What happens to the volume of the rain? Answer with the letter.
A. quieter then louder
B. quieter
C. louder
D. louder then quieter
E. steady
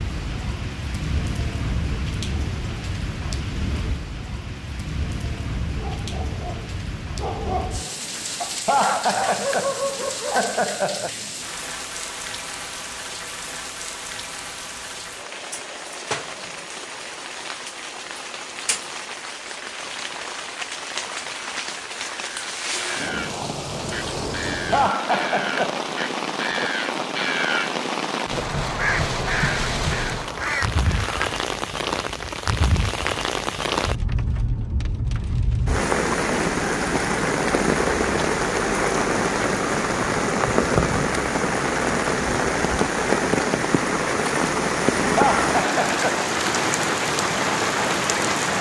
C.